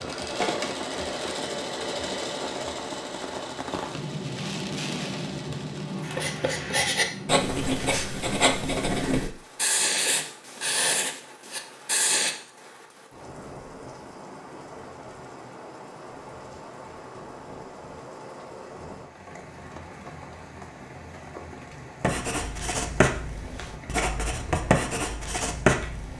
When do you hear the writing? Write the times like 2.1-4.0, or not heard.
6.0-12.3, 22.0-26.1.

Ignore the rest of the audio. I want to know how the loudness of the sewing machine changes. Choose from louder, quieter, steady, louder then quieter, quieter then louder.
quieter.